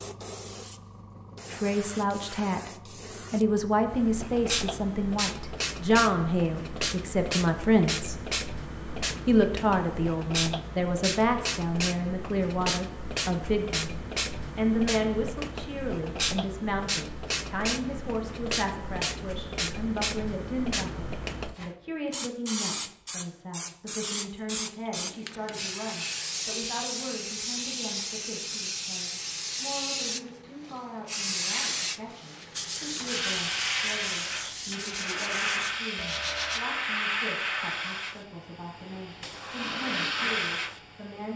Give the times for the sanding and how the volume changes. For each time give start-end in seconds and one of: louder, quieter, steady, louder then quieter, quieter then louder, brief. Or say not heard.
32.5-36.6 steady.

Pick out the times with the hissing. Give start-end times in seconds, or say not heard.
0.0-41.3.